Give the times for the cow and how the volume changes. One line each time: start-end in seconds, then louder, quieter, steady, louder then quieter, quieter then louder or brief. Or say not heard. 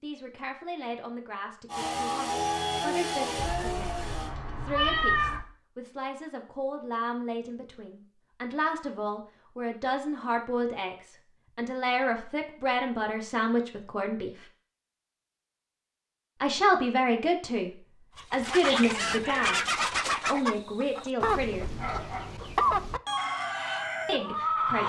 not heard.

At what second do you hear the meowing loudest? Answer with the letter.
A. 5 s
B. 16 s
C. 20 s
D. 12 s
A.